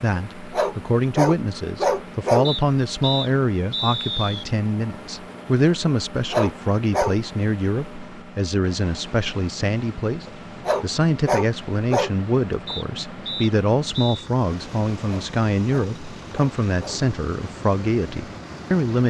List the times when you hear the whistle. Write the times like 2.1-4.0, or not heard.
2.5-4.5, 12.7-14.3.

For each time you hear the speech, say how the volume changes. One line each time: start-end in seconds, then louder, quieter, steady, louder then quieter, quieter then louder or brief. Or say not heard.
0.0-19.0 steady.